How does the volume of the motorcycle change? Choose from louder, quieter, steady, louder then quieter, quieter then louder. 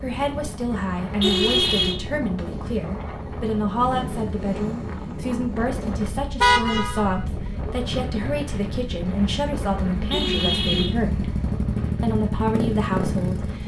louder.